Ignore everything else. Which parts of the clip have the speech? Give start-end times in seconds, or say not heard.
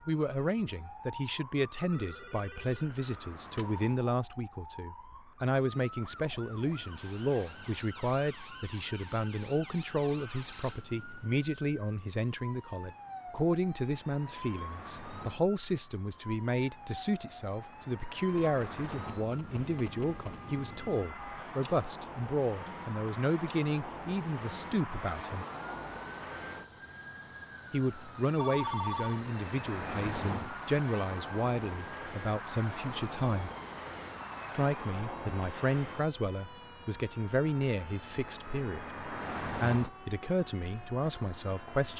0.1-25.4, 27.7-33.5, 34.5-41.9.